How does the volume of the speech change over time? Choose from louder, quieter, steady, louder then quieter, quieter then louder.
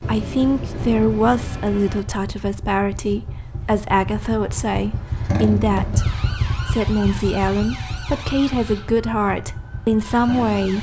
steady.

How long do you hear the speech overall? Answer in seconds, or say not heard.
11 s.